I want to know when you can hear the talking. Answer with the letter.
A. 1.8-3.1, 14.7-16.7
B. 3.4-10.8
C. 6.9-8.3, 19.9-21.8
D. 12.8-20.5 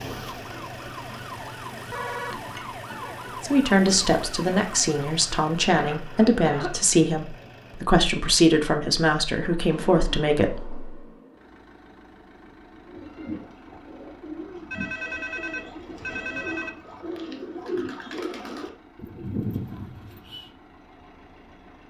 B.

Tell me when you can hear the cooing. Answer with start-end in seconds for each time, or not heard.
12.8-20.5.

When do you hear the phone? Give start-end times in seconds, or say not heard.
1.8-3.1, 14.7-16.7.